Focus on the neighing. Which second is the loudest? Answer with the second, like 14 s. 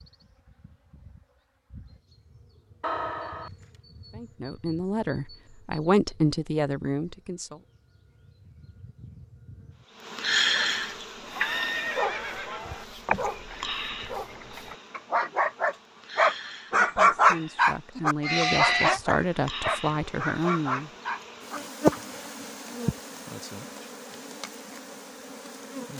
19 s.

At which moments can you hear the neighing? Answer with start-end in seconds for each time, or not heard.
2.8-3.5, 11.3-12.8, 18.2-19.0.